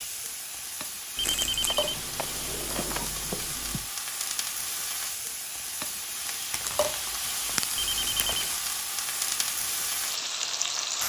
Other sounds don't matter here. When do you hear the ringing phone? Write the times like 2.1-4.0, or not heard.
1.1-3.9, 7.8-8.6.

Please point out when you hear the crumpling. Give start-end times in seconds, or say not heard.
1.2-1.9, 6.5-8.7.